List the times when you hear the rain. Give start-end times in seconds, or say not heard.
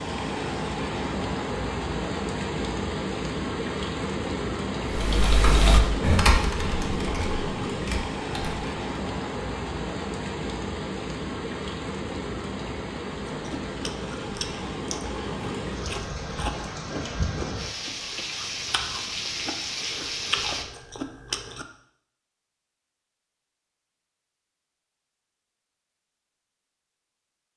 0.0-20.6.